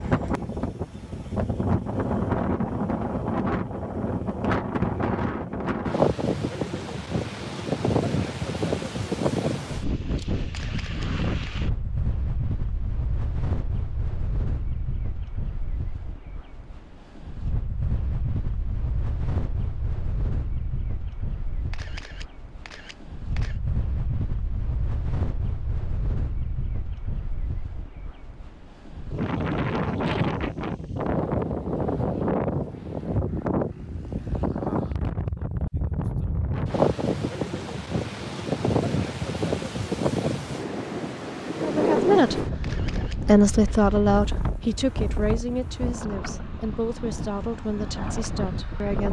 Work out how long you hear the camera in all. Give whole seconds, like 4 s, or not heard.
4 s.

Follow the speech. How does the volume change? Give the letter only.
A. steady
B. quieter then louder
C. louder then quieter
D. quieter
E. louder
D.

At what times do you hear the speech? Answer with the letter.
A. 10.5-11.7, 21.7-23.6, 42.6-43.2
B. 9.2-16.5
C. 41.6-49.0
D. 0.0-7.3
C.